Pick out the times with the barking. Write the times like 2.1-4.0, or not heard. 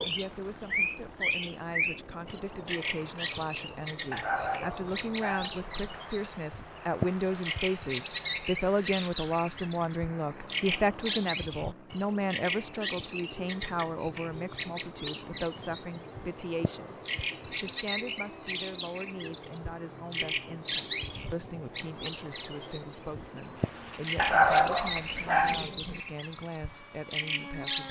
4.1-5.8, 24.1-26.0.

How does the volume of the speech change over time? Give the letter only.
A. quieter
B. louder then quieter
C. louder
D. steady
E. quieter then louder
B.